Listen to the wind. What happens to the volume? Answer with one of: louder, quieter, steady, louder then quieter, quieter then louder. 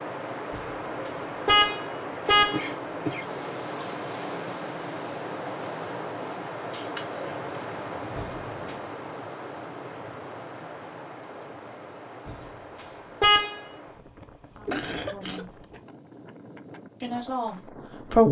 quieter.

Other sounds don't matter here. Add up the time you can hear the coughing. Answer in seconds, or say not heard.
3 s.